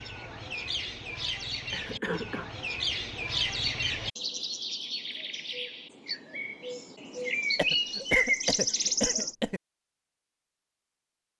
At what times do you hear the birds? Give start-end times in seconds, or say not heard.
0.0-9.3.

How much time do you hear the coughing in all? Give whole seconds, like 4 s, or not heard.
3 s.